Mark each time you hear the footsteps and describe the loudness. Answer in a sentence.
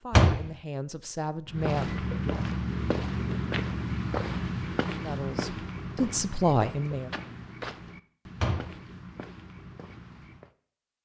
The footsteps can be heard from 1.4 to 10.5 s, getting quieter.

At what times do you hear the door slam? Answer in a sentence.
You can hear the door slam from 0.1 to 0.5 s and from 8.3 to 8.8 s.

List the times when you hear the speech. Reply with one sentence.
The speech can be heard from 0.0 to 2.4 s and from 5.0 to 7.1 s.